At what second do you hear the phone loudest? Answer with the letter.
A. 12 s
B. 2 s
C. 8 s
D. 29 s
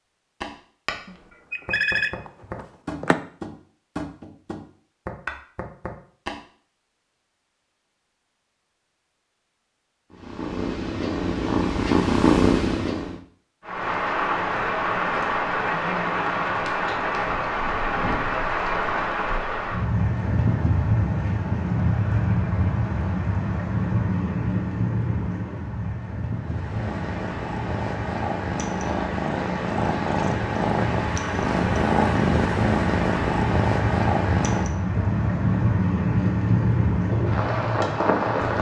B.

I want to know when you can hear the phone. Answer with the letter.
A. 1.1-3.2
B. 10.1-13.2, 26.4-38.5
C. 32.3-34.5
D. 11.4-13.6
A.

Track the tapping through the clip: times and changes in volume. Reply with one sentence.
You can hear the tapping from 0.4 to 6.4 s, at a steady volume.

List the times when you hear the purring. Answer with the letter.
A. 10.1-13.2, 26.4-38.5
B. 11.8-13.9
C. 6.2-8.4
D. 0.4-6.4
A.